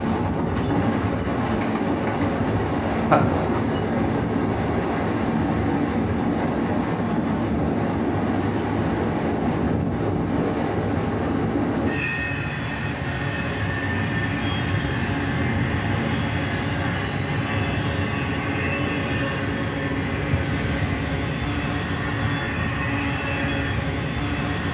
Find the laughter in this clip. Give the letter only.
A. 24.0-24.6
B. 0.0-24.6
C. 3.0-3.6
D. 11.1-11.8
C.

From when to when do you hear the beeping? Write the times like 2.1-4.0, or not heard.
not heard.